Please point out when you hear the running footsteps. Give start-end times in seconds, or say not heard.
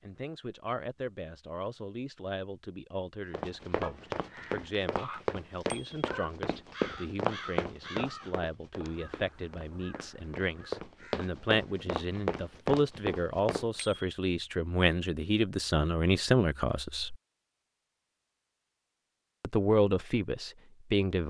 3.3-13.7.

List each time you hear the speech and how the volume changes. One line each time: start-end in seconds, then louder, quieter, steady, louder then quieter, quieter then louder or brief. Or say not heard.
0.0-17.1 louder
19.4-21.2 brief.